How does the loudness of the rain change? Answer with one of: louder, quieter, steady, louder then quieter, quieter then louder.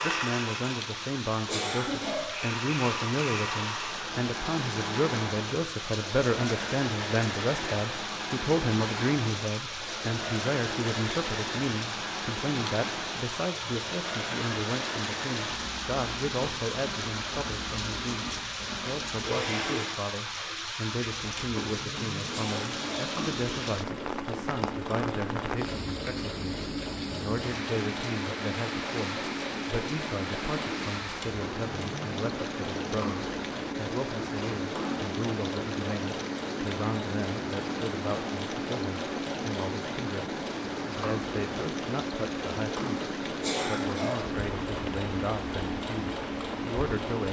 steady.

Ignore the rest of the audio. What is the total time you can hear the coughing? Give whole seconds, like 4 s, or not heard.
3 s.